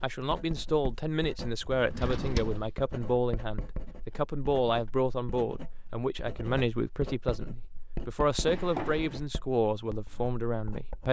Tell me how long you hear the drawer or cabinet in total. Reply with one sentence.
The drawer or cabinet can be heard for 2 seconds in total.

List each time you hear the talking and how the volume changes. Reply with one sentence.
You can hear the talking from 0.0 to 11.0 s, at a steady volume.